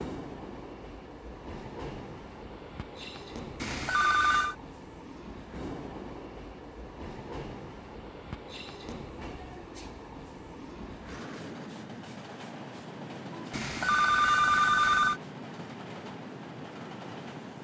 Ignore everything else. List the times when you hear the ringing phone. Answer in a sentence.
You can hear the ringing phone from 3.6 to 4.5 s and from 13.5 to 15.2 s.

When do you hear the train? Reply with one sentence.
The train can be heard from 0.0 to 17.6 s.